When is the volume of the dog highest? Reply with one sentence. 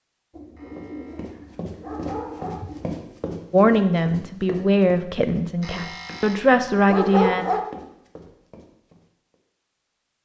The loudest moment of the dog is at 7 seconds.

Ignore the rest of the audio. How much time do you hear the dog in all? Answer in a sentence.
The dog can be heard for 4 seconds in total.